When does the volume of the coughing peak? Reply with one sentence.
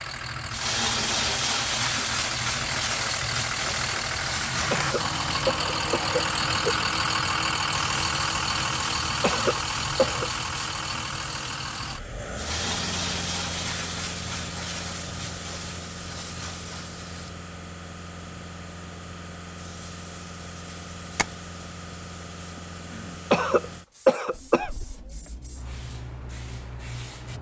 The volume of the coughing peaks at 24 seconds.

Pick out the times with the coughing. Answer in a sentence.
The coughing can be heard from 4.7 to 6.8 s, from 9.2 to 10.2 s and from 23.3 to 24.7 s.